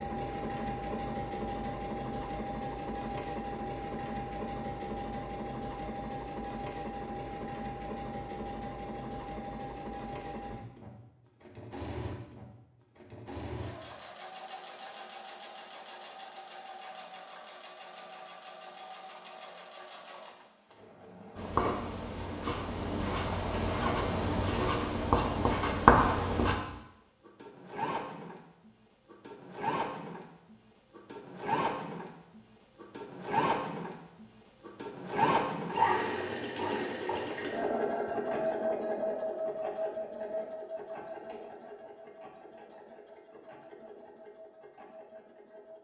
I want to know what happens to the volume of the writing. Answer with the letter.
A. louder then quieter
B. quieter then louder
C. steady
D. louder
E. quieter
D.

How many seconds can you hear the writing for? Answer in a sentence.
You can hear the writing for 5 seconds altogether.